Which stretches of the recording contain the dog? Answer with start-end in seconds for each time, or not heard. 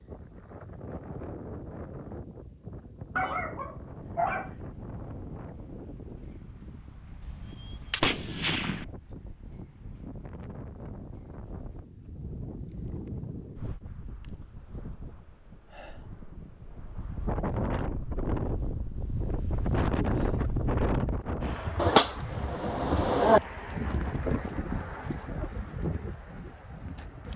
3.1-4.5.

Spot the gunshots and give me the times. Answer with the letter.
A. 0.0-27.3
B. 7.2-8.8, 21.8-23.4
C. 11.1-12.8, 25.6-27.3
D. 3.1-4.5
B.